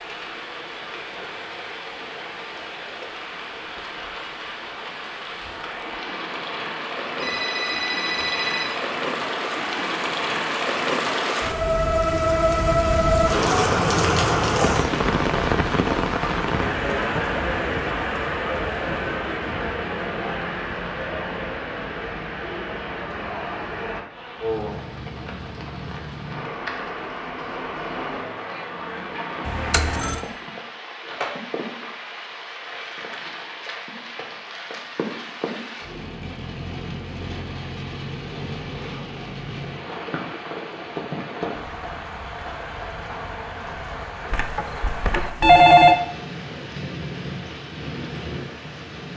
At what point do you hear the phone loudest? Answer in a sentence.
The loudest moment of the phone is at 46 seconds.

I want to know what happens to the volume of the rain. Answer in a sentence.
The volume of the rain goes up, then down.